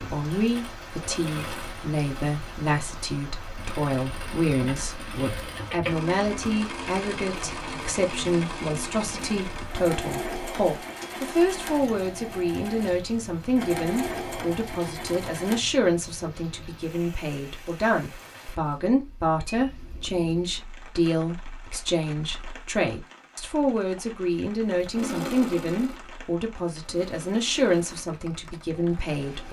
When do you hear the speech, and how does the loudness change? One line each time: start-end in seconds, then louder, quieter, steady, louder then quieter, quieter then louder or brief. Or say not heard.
0.1-29.4 steady.